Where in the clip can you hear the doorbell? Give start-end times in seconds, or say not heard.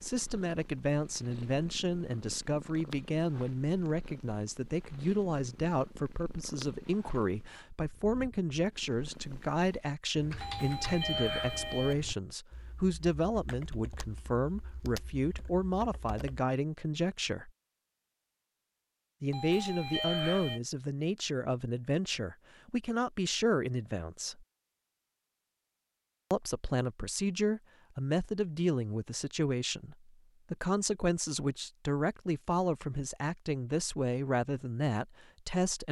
10.4-11.9, 19.3-20.6.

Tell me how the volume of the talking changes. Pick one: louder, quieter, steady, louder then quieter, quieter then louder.
steady.